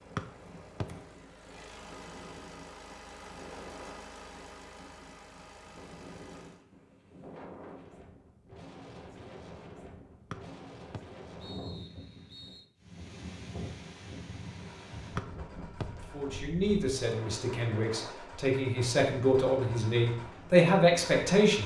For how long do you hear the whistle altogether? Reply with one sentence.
You can hear the whistle for 4 seconds altogether.